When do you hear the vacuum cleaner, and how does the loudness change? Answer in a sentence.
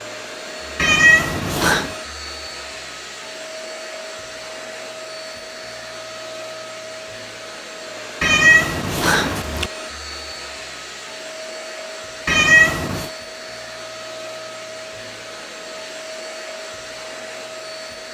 You can hear the vacuum cleaner from 0.0 to 18.0 s, at a steady volume.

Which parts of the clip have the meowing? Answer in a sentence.
The meowing can be heard from 0.8 to 1.9 s, from 8.2 to 9.7 s and from 12.2 to 13.1 s.